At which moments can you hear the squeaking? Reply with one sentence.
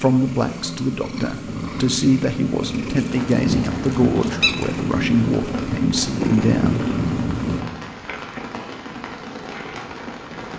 The squeaking can be heard from 3.0 to 4.7 s.